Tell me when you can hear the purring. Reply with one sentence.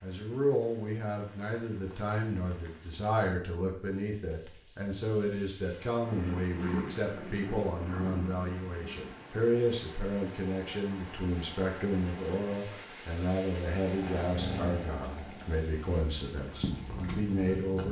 The purring can be heard from 6.0 to 9.1 s and from 13.8 to 17.8 s.